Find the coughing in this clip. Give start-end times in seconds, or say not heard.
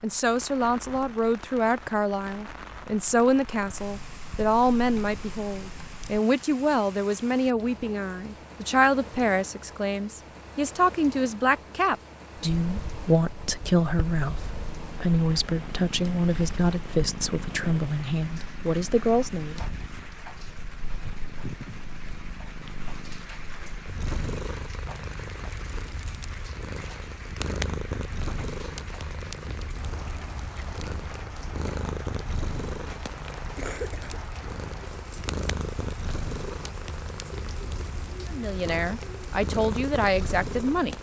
33.5-34.2.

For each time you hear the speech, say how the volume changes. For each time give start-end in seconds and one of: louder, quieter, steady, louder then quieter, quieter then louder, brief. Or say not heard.
0.0-19.6 steady
38.3-40.9 brief.